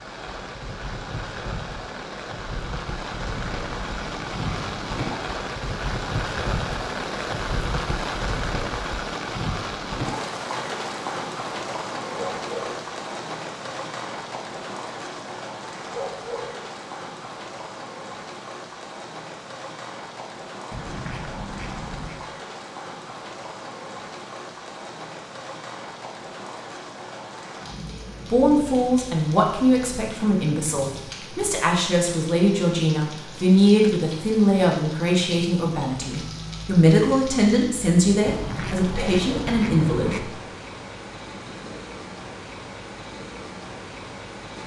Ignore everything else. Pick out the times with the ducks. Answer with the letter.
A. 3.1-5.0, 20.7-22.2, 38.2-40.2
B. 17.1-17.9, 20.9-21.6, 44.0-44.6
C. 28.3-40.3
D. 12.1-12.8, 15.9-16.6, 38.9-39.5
A.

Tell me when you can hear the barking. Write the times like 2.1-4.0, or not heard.
12.1-12.8, 15.9-16.6, 38.9-39.5.